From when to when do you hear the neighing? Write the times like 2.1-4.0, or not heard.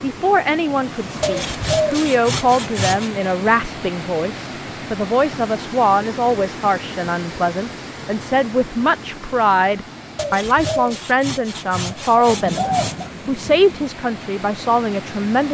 not heard.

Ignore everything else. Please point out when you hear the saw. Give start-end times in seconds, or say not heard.
1.2-3.1, 10.2-13.1.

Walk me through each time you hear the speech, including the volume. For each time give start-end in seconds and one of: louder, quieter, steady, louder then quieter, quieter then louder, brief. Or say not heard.
0.0-15.4 steady.